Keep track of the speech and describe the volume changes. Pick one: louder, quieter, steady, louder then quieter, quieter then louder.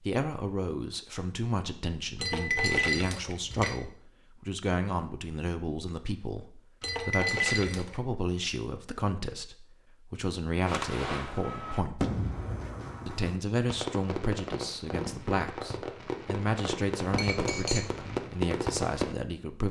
steady.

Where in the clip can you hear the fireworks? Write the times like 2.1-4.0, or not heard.
10.7-19.1.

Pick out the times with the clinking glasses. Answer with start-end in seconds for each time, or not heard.
2.1-3.8, 6.8-8.0, 17.1-17.9.